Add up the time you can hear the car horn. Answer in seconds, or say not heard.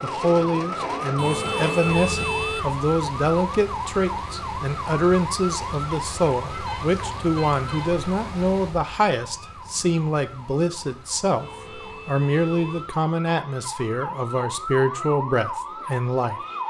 5 s.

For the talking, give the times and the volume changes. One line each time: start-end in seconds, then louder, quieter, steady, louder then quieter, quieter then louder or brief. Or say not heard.
0.0-16.4 steady.